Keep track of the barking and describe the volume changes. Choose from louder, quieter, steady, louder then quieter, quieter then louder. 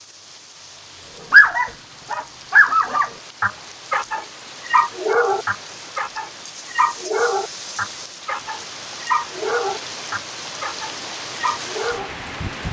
quieter.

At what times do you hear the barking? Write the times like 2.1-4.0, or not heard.
1.3-12.1.